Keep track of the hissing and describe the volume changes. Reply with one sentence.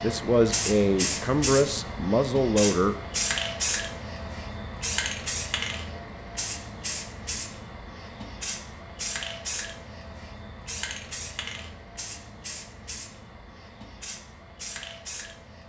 The volume of the hissing goes down.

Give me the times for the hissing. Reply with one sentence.
The hissing can be heard from 0.0 to 15.6 s.